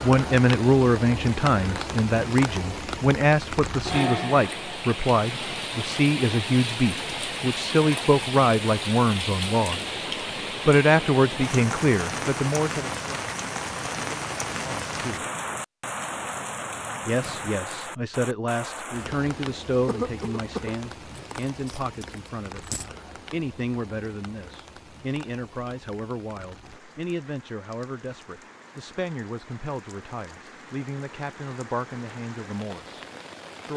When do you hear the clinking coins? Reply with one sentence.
The clinking coins can be heard from 21.1 to 22.9 s.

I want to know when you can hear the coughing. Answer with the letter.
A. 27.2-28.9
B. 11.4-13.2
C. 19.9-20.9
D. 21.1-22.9
C.